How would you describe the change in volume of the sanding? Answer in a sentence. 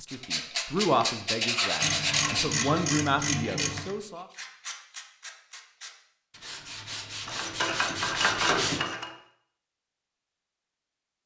The volume of the sanding goes down, then up.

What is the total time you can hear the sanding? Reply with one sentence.
You can hear the sanding for 9 seconds altogether.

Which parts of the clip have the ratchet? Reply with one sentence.
The ratchet can be heard from 1.8 to 4.0 s and from 7.2 to 9.1 s.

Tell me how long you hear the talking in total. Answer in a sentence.
The talking can be heard for 4 seconds in total.